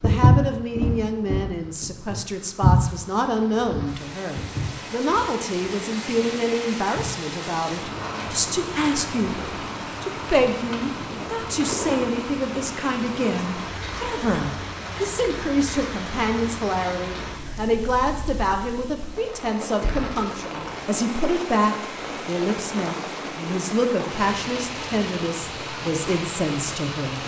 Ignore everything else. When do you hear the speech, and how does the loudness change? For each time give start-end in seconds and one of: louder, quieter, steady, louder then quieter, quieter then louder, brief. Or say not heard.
0.0-27.2 steady.